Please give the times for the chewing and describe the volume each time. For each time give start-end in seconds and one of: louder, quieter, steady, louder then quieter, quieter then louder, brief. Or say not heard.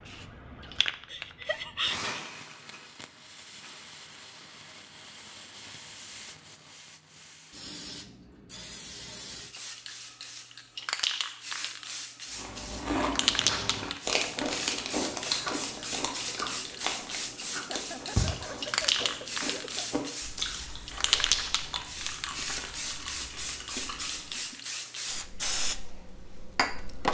12.3-24.6 quieter.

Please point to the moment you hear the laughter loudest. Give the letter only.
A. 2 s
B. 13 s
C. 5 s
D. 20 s
A.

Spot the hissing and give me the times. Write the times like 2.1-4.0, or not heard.
0.0-27.0.